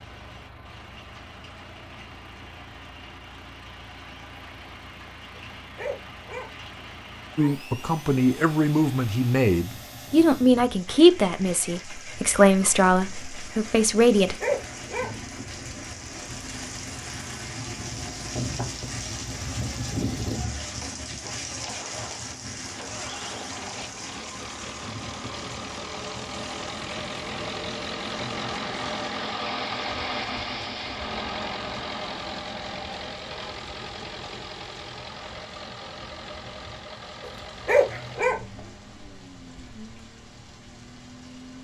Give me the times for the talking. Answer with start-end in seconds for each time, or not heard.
7.3-14.3.